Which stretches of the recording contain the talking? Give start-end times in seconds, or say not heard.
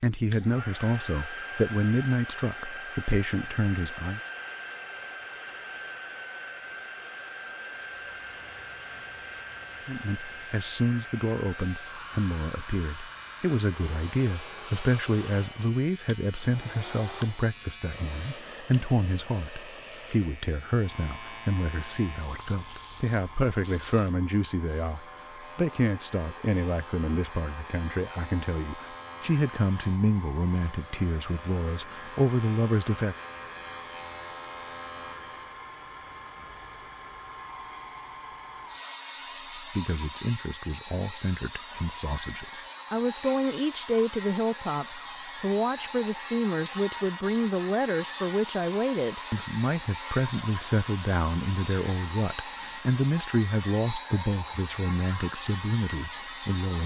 0.0-4.2, 9.8-33.1, 39.5-56.8.